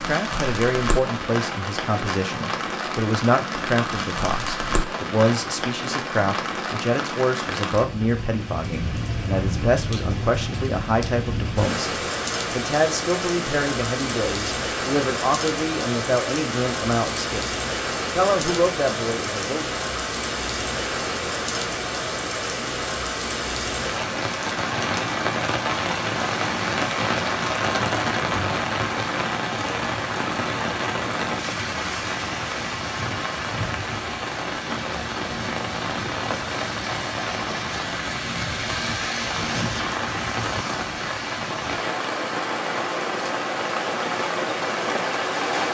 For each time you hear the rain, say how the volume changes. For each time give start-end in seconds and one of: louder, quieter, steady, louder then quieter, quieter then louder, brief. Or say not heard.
0.0-45.6 steady.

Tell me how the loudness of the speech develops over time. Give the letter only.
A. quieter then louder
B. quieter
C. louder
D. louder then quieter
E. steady
E.